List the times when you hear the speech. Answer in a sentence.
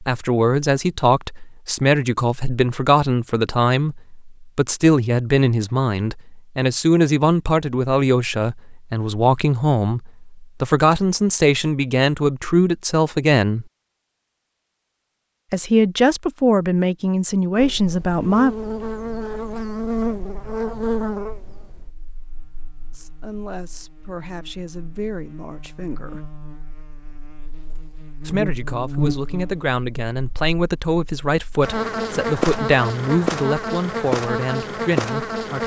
You can hear the speech from 0.0 to 13.7 s, from 15.5 to 18.6 s, from 22.9 to 26.2 s and from 28.2 to 35.6 s.